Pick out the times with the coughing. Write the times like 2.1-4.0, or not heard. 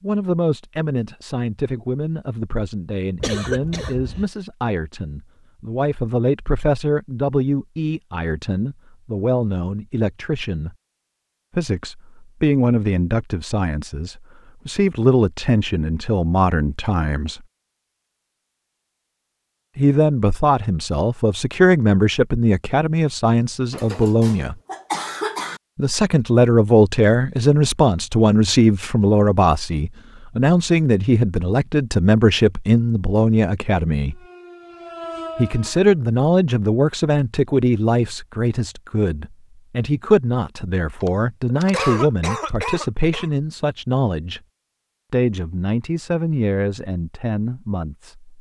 3.1-4.2, 23.7-25.6, 41.0-43.3.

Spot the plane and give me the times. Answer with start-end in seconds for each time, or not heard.
not heard.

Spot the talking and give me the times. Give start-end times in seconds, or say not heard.
0.0-10.8, 11.6-17.4, 19.8-24.6, 25.8-34.2, 35.4-44.4, 45.1-48.3.